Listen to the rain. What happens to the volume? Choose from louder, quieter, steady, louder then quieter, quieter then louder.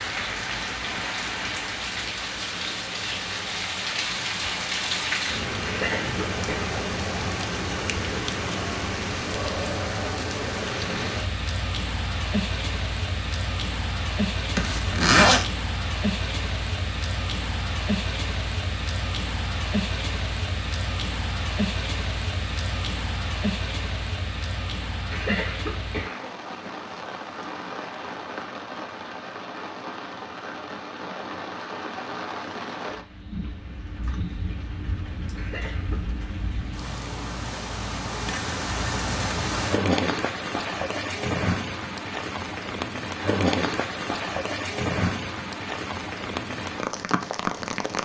quieter then louder.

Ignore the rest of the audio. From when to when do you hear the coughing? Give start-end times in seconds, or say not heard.
5.7-6.8, 25.1-26.7, 35.4-36.0.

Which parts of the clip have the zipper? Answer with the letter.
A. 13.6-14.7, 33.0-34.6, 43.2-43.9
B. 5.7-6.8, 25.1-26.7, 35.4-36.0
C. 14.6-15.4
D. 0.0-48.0
C.